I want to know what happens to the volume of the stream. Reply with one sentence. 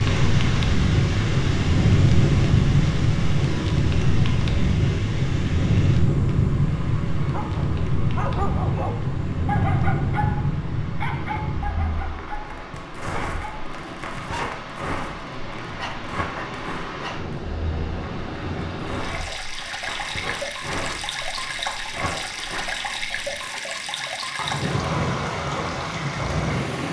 The volume of the stream goes down, then up.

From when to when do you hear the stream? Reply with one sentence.
You can hear the stream from 0.0 to 26.8 s.